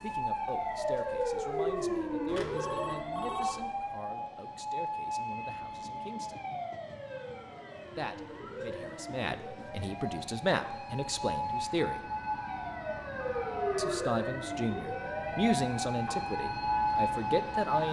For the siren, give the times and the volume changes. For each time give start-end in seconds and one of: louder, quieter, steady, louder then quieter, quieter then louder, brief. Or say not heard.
0.0-17.8 quieter then louder.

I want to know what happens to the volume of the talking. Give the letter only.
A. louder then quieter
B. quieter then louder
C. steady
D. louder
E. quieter
D.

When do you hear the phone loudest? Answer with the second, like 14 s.
3 s.